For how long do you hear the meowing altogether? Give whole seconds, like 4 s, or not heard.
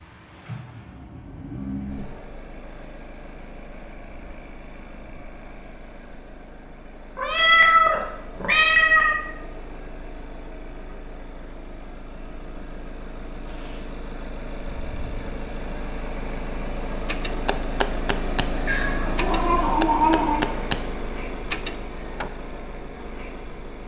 4 s.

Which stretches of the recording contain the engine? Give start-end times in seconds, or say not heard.
0.0-23.8.